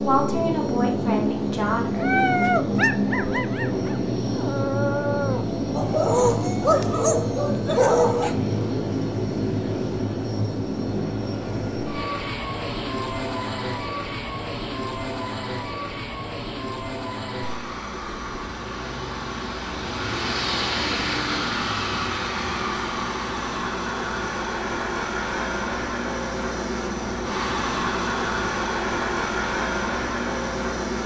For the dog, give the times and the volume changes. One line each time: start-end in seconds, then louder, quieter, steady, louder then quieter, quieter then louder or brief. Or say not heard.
2.0-8.3 quieter then louder.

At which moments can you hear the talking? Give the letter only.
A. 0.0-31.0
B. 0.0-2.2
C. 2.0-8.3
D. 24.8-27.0
B.